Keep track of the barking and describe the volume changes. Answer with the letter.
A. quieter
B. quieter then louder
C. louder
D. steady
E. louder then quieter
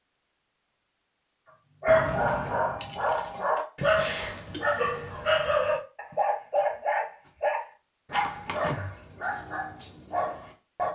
A.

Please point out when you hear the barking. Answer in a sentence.
The barking can be heard from 1.8 to 10.9 s.